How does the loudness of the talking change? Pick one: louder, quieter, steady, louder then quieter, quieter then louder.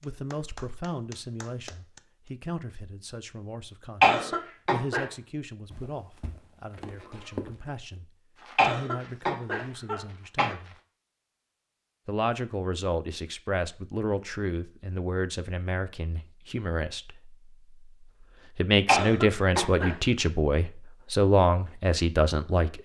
louder.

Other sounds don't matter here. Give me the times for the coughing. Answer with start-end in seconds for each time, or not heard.
4.0-5.0, 8.6-10.6, 18.9-19.9.